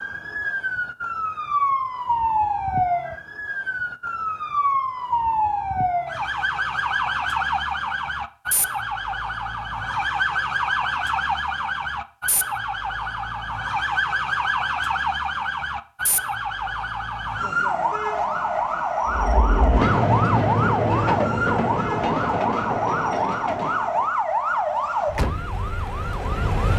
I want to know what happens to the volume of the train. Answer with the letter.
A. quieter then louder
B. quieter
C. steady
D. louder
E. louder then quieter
B.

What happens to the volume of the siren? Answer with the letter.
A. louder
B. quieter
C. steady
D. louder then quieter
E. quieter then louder
C.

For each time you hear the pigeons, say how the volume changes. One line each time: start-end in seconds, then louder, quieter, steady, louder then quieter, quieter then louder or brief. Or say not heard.
not heard.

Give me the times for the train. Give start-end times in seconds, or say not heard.
19.1-24.1.